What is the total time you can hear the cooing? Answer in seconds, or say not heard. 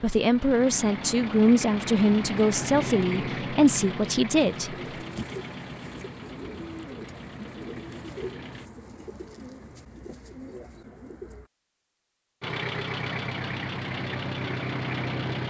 7 s.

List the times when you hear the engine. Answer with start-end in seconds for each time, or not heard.
0.0-8.7, 12.4-15.4.